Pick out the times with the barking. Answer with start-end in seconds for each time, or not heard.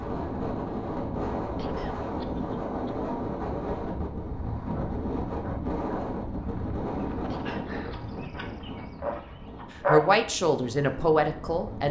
4.7-10.1.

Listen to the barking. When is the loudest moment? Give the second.
10 s.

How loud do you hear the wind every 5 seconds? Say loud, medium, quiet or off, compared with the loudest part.
loud, loud, medium.